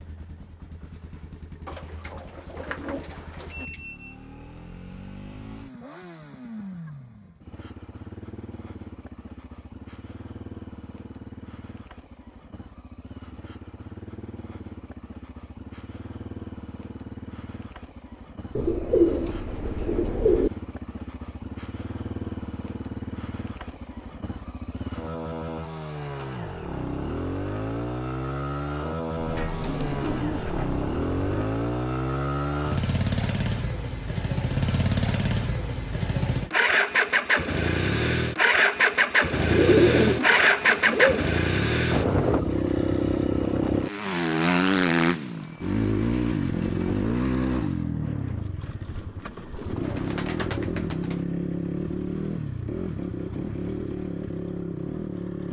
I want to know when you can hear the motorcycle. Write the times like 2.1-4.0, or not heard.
0.0-55.4.